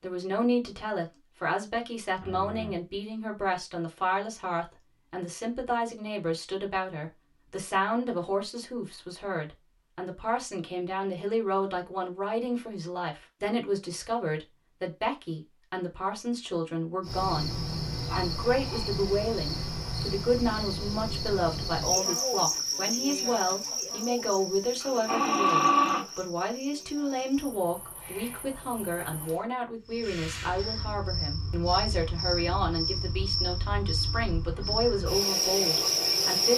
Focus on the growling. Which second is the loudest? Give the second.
26 s.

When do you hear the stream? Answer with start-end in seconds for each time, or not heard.
not heard.